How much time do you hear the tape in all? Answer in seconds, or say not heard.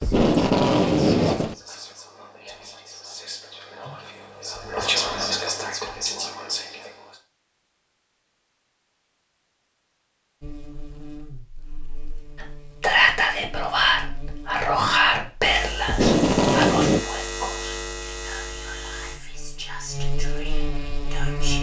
3 s.